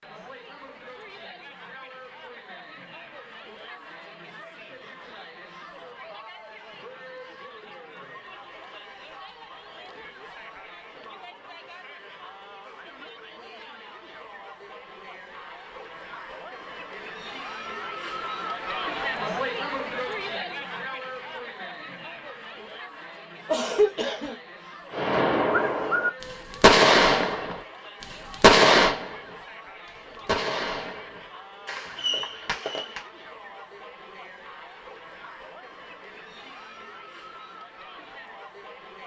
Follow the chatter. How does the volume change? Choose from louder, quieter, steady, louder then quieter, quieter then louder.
louder then quieter.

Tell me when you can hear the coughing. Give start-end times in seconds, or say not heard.
23.4-24.4.